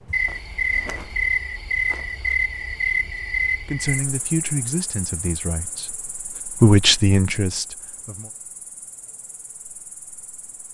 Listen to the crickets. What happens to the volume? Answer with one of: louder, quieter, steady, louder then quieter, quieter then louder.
quieter.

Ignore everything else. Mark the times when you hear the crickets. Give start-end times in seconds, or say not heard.
0.0-10.6.